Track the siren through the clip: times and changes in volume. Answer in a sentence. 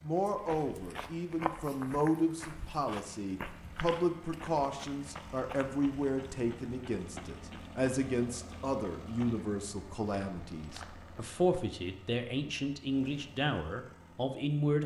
You can't hear the siren here.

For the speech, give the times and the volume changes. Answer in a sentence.
The speech can be heard from 0.0 to 14.8 s, at a steady volume.